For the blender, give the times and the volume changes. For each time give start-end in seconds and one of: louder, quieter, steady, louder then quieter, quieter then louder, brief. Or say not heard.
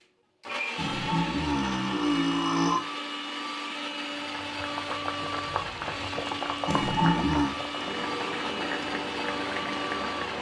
0.0-10.3 steady.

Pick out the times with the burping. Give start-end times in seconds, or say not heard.
0.8-2.8, 6.7-7.5.